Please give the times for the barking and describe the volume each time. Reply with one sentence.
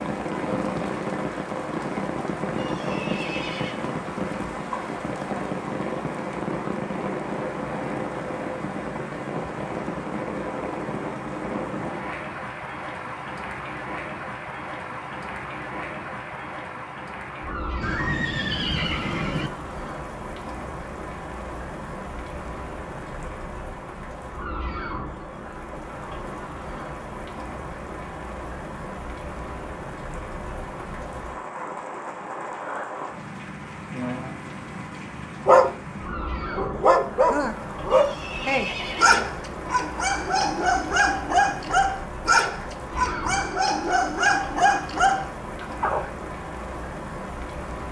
The barking can be heard from 35.5 to 46.1 s, at a steady volume.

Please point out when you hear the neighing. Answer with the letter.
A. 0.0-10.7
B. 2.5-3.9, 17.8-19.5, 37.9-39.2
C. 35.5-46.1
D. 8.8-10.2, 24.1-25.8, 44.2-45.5
B.